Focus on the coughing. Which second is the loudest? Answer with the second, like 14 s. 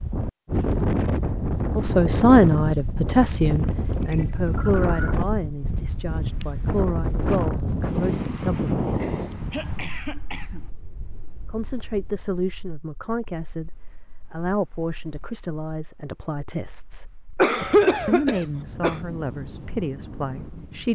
18 s.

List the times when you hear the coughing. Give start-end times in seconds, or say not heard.
4.0-5.2, 9.0-10.7, 17.4-19.0.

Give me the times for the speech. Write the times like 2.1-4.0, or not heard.
1.8-9.0, 11.5-17.1, 18.1-20.8.